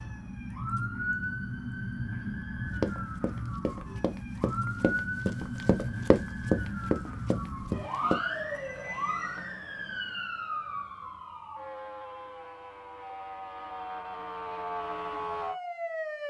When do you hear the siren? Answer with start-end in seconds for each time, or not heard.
0.0-16.2.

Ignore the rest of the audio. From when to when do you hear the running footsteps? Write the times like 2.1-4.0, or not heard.
2.8-8.2.